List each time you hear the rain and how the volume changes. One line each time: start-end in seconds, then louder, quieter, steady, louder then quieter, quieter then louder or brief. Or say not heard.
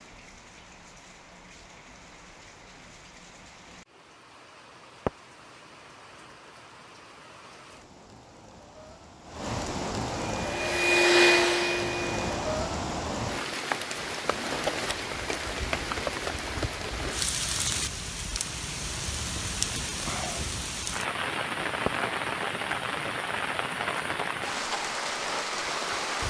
0.0-26.2 louder.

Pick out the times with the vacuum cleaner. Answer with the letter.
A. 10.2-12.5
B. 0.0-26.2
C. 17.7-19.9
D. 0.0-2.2
A.